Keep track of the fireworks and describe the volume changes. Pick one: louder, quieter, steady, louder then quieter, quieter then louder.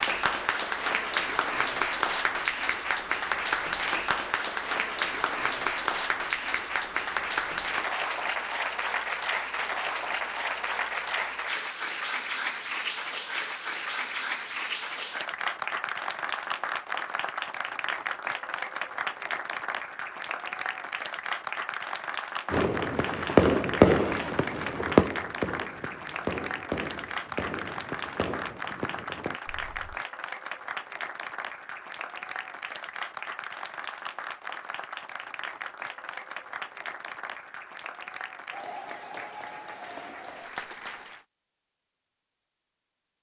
quieter.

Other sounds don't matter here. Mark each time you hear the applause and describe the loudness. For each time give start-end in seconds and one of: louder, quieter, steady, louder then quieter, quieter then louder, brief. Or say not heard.
0.0-41.2 quieter.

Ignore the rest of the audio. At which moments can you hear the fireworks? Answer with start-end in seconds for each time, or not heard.
22.5-29.9.